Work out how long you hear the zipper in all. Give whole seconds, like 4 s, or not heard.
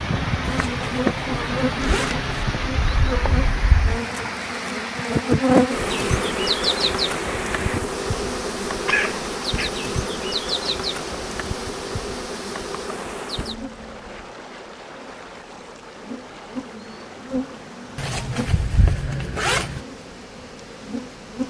4 s.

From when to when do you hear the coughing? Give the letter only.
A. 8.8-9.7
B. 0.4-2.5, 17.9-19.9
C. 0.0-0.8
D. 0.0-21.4
A.